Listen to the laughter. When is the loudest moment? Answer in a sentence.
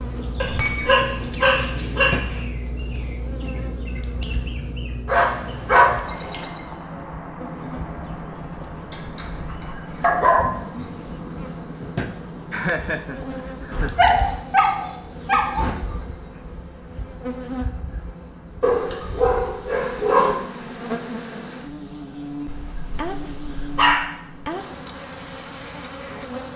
The volume of the laughter peaks at 13 seconds.